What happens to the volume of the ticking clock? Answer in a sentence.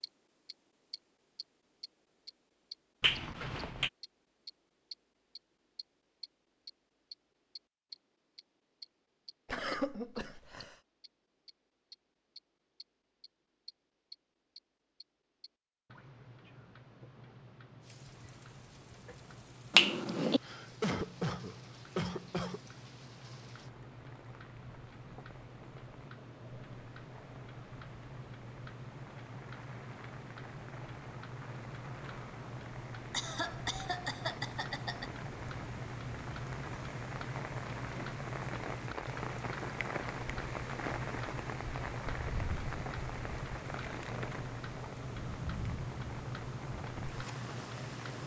The loudness of the ticking clock goes up.